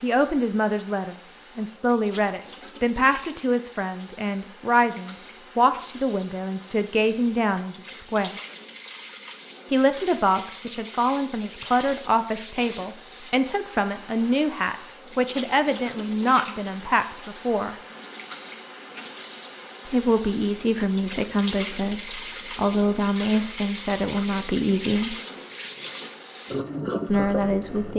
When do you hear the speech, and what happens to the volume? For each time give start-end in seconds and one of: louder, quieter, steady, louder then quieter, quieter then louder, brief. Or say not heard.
0.0-8.3 steady
9.7-17.8 steady
19.9-25.1 steady
27.1-27.9 brief.